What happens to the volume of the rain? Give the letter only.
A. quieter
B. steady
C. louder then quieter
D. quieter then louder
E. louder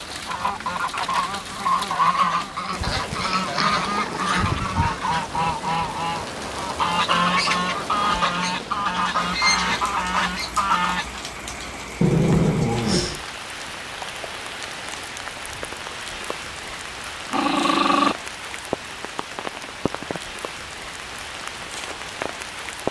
B.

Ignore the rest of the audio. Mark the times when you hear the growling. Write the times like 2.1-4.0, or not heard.
3.1-5.0, 12.0-13.2, 17.1-18.1.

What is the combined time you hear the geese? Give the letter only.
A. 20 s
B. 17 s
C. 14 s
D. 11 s
D.